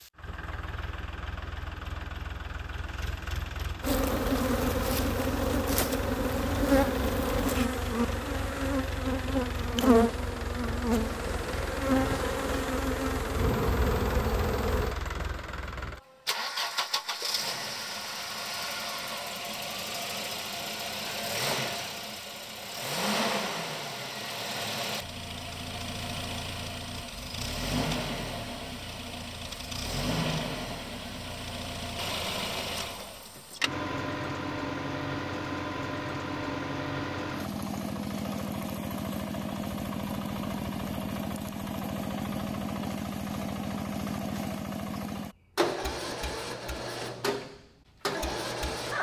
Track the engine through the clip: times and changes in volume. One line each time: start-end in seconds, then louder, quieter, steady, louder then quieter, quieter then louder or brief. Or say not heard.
0.0-48.9 louder.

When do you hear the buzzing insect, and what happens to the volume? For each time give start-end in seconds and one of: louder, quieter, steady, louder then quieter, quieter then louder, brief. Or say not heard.
3.8-14.9 steady.